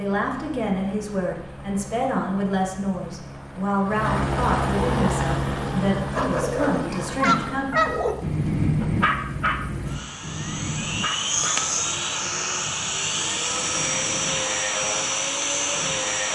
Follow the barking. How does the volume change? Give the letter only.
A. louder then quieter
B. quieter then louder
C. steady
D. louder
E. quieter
E.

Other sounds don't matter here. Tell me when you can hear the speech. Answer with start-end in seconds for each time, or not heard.
0.0-8.0.